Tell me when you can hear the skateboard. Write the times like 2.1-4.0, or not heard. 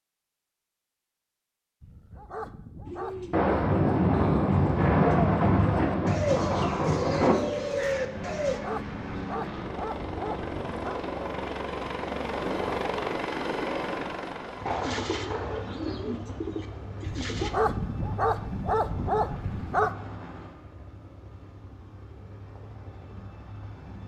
not heard.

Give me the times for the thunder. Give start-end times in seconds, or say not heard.
3.3-7.3, 14.6-17.0.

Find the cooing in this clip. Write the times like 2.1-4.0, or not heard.
2.9-8.6, 14.7-17.6.